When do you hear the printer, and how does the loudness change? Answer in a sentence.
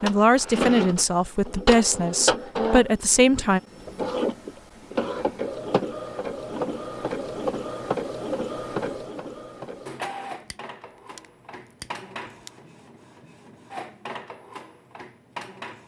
The printer can be heard from 0.0 to 15.8 s, getting quieter.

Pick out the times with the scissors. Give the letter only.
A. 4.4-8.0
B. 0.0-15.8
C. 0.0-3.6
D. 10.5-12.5
D.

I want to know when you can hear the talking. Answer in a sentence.
You can hear the talking from 0.0 to 3.6 s.